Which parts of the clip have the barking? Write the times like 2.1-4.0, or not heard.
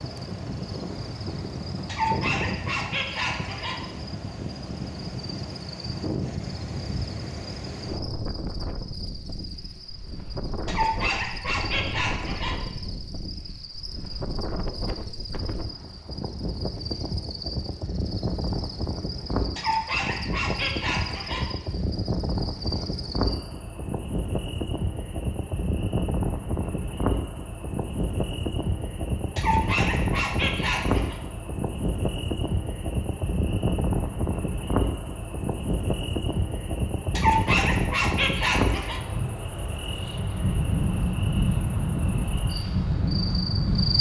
1.9-3.8, 10.7-12.6, 19.6-21.5, 29.4-31.1, 37.1-39.0.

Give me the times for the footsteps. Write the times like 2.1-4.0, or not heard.
not heard.